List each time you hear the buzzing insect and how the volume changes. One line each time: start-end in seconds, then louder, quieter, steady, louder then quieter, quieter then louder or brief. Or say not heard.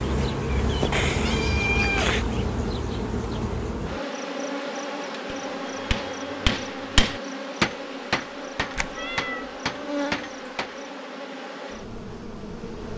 0.0-12.9 quieter.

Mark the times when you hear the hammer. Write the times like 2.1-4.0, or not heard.
5.2-10.8.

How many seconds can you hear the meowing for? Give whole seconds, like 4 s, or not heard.
2 s.